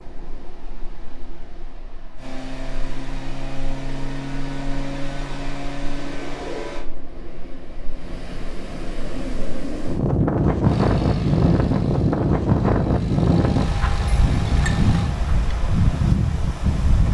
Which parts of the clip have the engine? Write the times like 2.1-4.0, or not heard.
2.1-6.8, 10.7-15.1.